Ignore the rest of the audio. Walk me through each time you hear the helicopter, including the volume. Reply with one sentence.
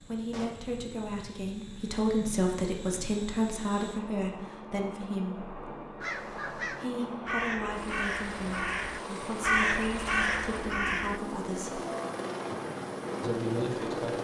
The helicopter can be heard from 0.0 to 14.1 s, getting louder.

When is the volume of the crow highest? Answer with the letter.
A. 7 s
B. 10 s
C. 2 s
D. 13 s
B.